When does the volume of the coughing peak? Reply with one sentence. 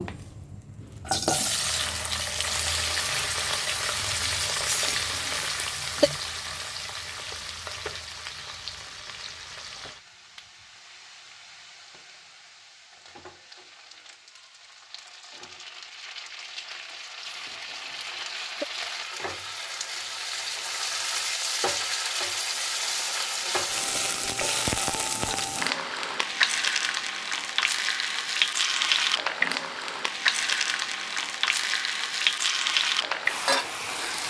The loudest moment of the coughing is at 6 seconds.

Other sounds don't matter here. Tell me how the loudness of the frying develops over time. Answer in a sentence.
The loudness of the frying goes down, then up.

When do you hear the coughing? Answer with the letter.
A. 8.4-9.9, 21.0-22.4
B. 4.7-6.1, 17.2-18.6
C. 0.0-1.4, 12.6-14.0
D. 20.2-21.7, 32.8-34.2
B.